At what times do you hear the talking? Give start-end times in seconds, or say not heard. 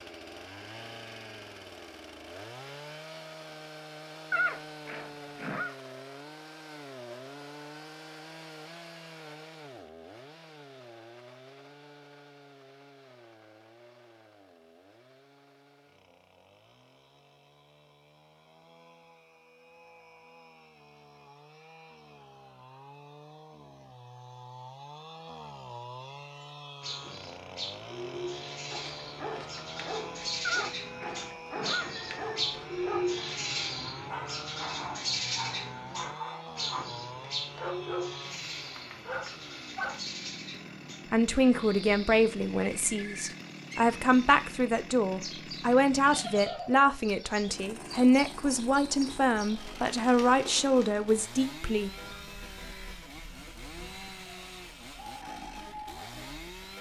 41.1-51.9.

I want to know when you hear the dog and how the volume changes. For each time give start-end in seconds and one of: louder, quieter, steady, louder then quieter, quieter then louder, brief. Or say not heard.
28.7-40.0 steady.